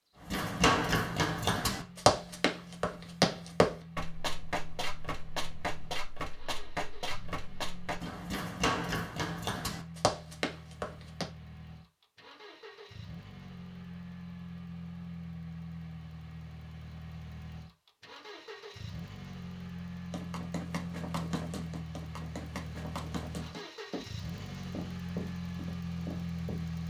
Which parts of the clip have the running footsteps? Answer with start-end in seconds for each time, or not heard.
0.2-11.2, 20.1-26.8.